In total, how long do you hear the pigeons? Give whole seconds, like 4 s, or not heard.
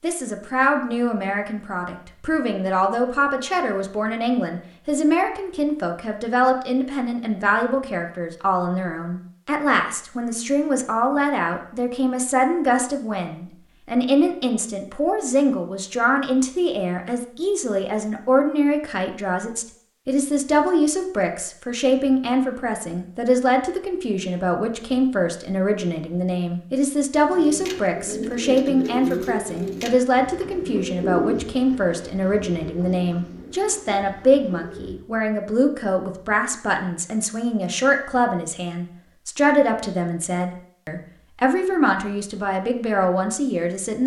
8 s.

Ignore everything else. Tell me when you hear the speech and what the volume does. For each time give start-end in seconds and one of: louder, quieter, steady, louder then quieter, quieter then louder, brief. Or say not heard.
0.0-44.0 steady.